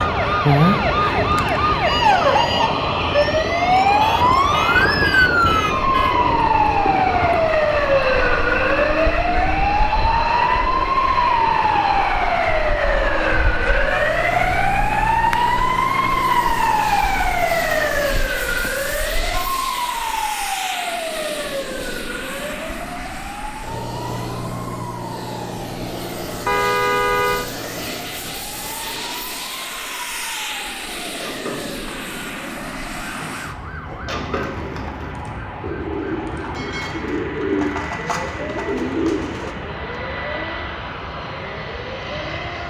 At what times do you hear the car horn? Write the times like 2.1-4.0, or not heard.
4.0-6.2, 26.4-27.5.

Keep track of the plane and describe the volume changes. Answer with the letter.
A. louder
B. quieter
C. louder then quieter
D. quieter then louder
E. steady
B.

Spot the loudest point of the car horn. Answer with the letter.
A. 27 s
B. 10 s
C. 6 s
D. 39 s
A.